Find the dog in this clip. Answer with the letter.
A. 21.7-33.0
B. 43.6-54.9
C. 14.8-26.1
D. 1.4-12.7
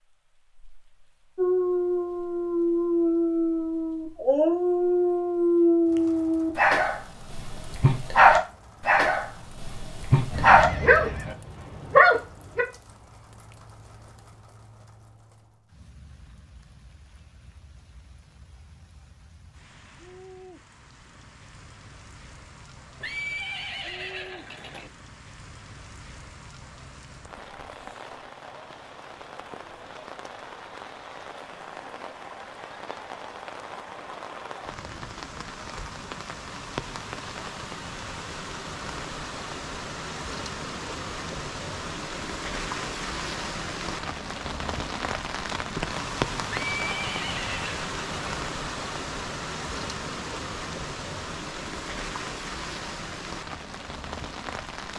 D.